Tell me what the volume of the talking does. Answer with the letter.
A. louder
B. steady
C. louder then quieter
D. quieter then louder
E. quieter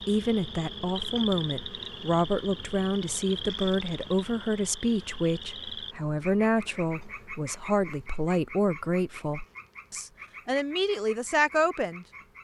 B.